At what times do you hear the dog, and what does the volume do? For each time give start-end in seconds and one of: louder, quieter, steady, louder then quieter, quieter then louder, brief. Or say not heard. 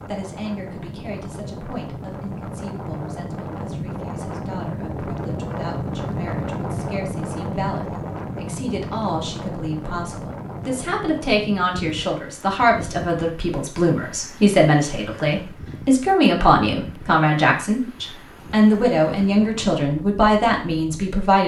not heard.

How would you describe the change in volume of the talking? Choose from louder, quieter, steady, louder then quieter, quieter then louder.
louder.